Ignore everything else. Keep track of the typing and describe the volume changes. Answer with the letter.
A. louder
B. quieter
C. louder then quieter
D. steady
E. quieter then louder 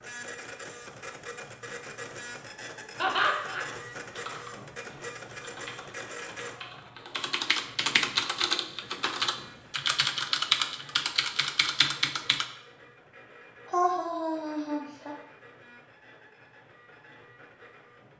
A.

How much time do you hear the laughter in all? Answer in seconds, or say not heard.
2 s.